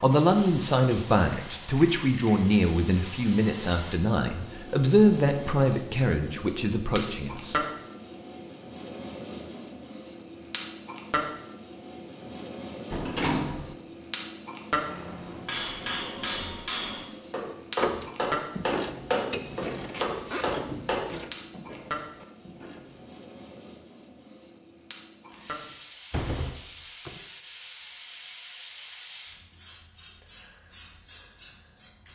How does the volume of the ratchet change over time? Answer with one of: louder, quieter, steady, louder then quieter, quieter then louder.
quieter.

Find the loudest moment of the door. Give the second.
13 s.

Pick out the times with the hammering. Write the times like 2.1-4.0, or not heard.
14.8-21.0.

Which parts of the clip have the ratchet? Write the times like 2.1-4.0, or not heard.
17.8-23.1.